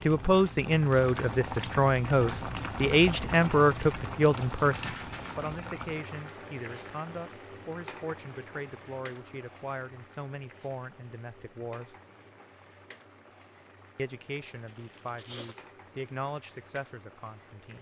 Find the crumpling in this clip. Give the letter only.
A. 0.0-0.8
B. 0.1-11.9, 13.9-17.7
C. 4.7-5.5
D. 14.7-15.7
D.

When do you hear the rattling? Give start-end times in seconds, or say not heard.
4.7-5.5.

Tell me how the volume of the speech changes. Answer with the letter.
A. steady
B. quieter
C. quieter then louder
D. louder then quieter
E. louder
B.